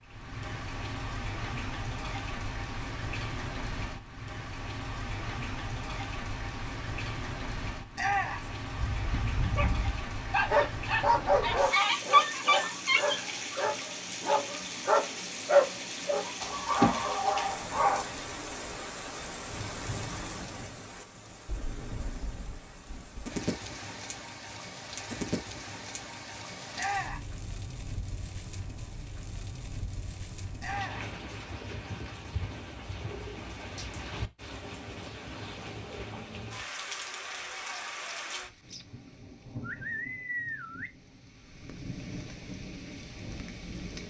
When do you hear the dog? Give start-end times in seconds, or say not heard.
8.8-18.1.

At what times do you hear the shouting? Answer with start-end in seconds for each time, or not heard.
8.0-8.5, 26.8-27.3, 30.6-31.1.